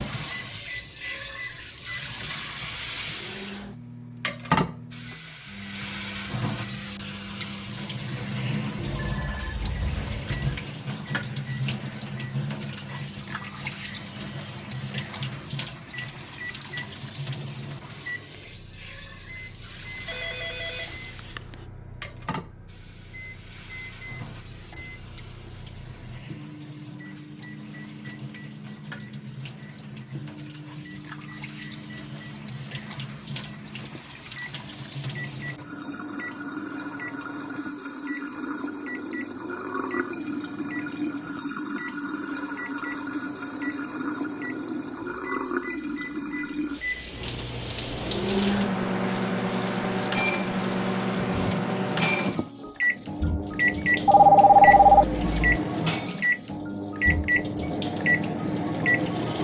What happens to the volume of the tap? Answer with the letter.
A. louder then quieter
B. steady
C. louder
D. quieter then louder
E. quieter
D.